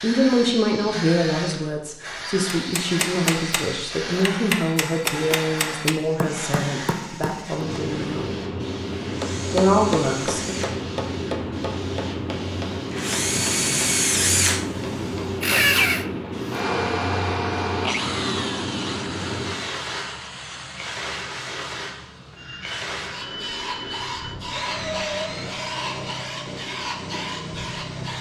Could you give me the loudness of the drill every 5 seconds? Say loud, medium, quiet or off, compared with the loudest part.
medium, quiet, loud, loud, medium, medium.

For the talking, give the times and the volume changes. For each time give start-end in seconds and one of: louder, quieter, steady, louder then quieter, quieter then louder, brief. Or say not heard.
0.0-8.2 quieter
9.5-10.6 brief.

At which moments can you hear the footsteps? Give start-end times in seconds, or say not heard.
not heard.